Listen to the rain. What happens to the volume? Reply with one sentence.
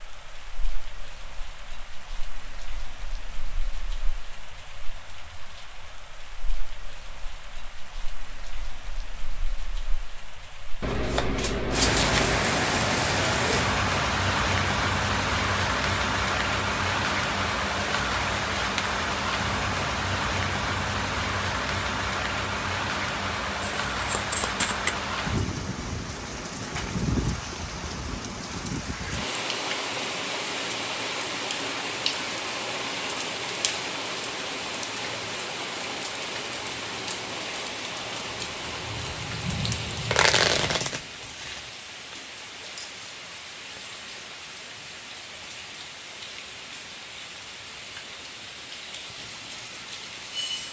The loudness of the rain goes up, then down.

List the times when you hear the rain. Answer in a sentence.
You can hear the rain from 0.0 to 50.6 s.